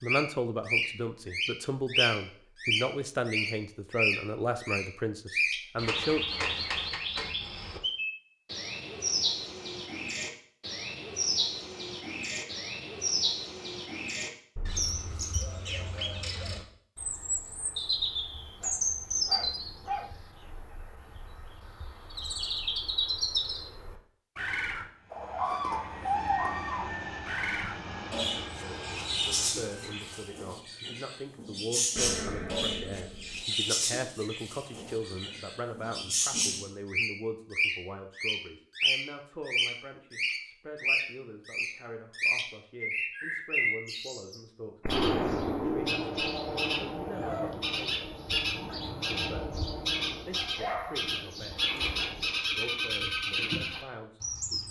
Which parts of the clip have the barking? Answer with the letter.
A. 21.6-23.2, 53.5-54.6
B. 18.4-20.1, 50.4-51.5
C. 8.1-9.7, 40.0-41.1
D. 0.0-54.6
B.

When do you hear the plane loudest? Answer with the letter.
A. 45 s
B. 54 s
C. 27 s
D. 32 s
C.